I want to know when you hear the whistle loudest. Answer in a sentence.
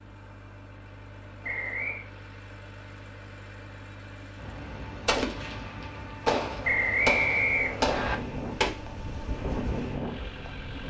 The volume of the whistle peaks at 7 seconds.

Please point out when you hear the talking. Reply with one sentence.
You can't hear the talking here.